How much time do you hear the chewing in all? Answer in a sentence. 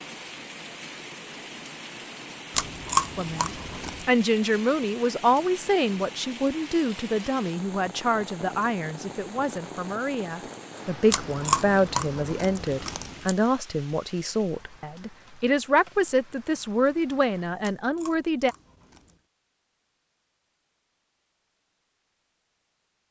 The chewing can be heard for 5 seconds in total.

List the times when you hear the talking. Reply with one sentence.
The talking can be heard from 3.1 to 18.6 s.